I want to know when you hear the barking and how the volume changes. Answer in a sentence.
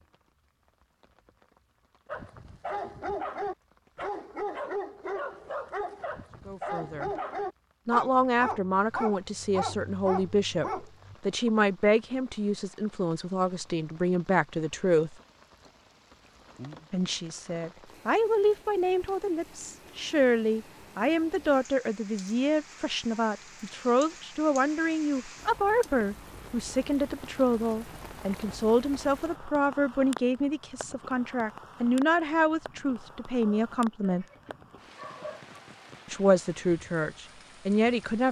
You can hear the barking from 2.0 to 11.5 s, at a steady volume; and briefly from 33.4 to 35.5 s.